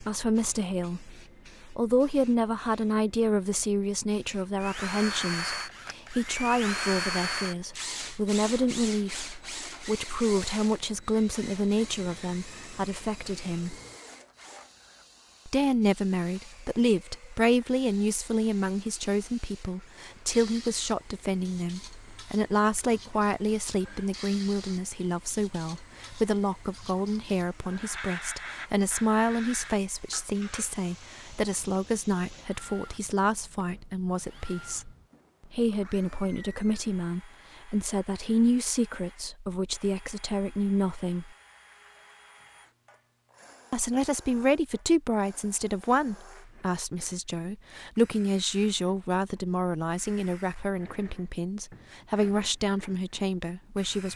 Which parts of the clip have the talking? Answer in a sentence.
You can hear the talking from 0.0 to 13.8 s, from 15.4 to 41.3 s and from 43.7 to 54.1 s.